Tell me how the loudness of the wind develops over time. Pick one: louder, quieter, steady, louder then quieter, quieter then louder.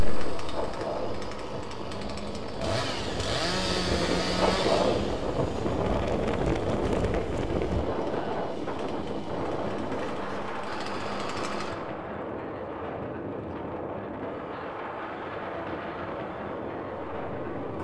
louder then quieter.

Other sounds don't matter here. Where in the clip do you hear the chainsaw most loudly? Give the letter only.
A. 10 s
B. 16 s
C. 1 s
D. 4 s
D.